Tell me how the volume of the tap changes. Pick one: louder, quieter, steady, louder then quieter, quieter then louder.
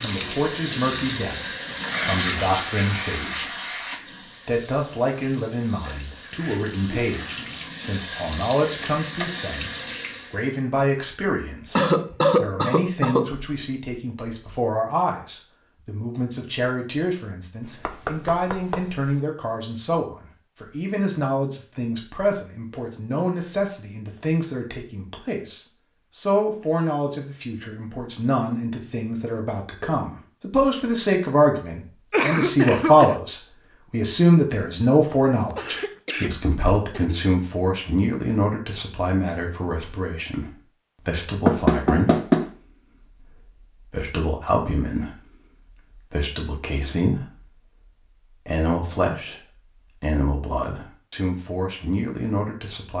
quieter then louder.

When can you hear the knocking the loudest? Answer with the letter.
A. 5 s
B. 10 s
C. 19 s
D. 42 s
D.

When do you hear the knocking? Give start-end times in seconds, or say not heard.
17.6-19.2, 41.5-42.5.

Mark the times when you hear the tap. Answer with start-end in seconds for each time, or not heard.
0.0-10.4.